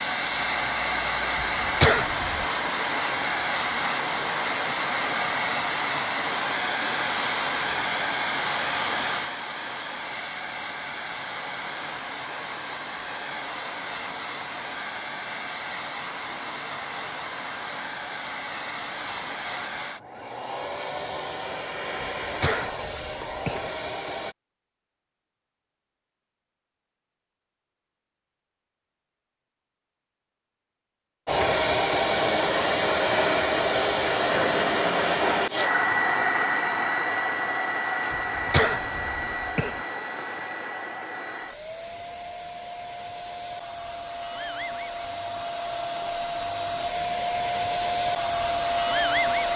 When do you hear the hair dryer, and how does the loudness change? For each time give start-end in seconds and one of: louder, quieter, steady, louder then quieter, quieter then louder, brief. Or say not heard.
0.0-24.4 quieter
31.2-49.5 quieter then louder.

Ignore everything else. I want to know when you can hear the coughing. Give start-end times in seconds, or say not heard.
1.4-2.5, 22.0-23.7, 38.1-39.8.